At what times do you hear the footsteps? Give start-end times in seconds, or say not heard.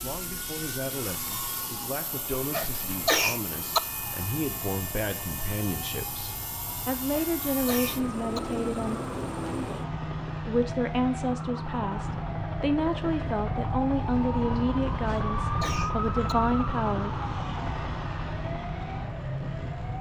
not heard.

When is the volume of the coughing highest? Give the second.
3 s.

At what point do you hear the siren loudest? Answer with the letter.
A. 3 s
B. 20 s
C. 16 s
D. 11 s
C.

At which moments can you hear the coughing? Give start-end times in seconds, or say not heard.
2.5-3.8, 7.1-8.4, 15.1-16.4.